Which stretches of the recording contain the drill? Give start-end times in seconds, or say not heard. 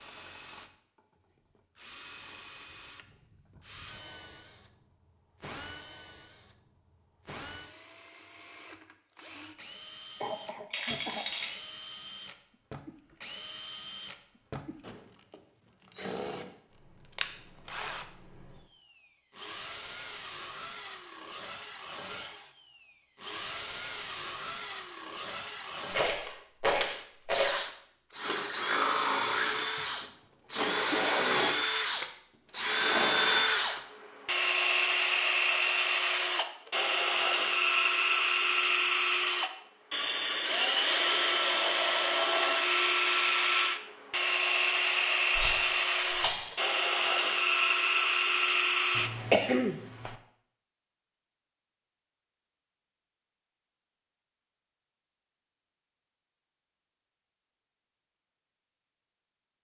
0.0-49.1.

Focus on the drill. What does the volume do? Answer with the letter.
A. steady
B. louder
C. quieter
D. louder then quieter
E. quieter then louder
B.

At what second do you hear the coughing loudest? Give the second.
49 s.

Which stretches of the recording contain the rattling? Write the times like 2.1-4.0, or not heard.
10.7-11.5, 25.9-27.6, 45.4-46.5.